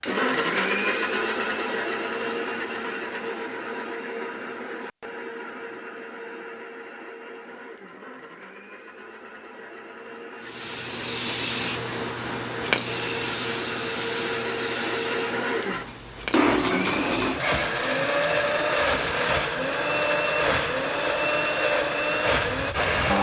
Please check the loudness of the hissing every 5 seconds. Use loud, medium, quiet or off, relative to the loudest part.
off, off, loud, medium, medium.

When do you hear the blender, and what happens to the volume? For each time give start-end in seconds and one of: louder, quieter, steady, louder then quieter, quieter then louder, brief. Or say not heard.
0.0-23.1 quieter then louder.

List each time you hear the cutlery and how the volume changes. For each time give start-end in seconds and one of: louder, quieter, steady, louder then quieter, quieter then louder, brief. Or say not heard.
not heard.